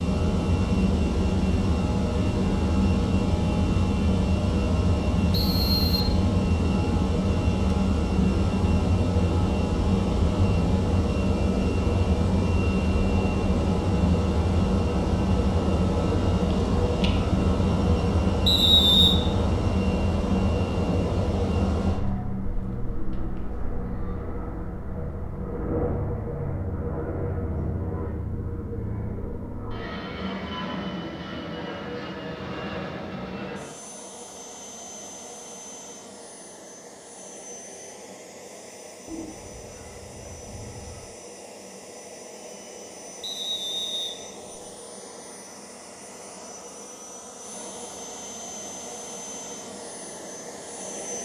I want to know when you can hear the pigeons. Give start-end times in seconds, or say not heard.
39.0-41.1.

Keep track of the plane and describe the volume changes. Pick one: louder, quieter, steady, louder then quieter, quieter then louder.
quieter.